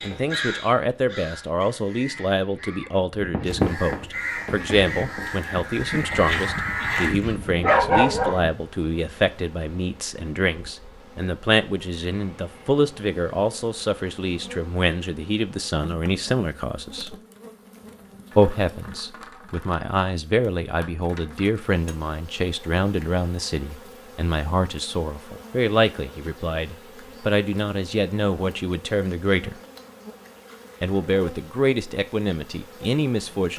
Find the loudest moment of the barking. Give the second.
8 s.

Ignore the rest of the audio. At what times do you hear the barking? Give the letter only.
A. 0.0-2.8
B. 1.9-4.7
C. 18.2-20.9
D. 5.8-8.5
D.